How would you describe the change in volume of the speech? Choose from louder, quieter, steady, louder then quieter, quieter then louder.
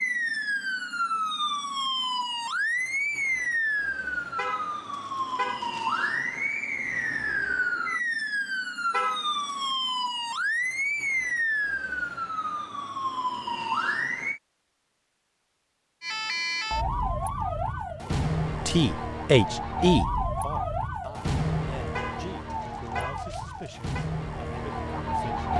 quieter.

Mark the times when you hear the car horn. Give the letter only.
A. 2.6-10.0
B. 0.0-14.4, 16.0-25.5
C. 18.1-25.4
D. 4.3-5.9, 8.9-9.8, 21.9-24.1
D.